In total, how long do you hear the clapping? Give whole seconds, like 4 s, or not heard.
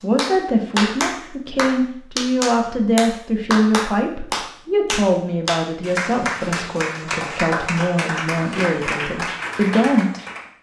10 s.